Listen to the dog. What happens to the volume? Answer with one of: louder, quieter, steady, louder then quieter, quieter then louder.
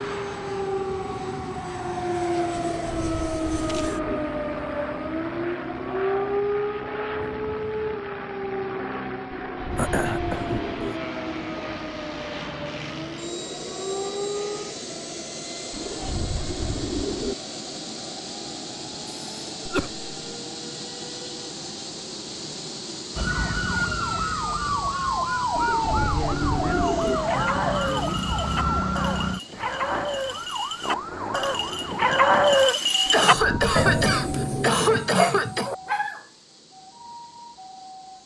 louder then quieter.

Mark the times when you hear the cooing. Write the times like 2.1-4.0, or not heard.
2.8-4.2, 9.4-10.9, 15.7-17.4, 25.6-27.2, 33.2-34.7.